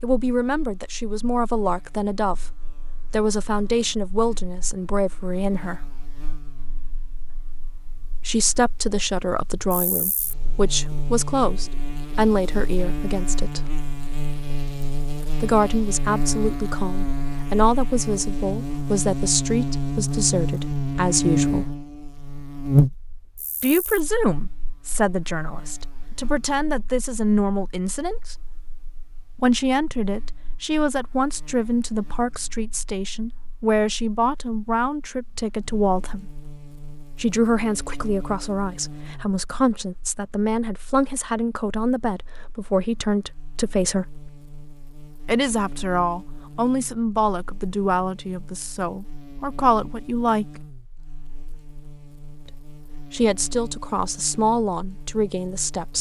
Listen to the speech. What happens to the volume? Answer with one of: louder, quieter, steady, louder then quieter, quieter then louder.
steady.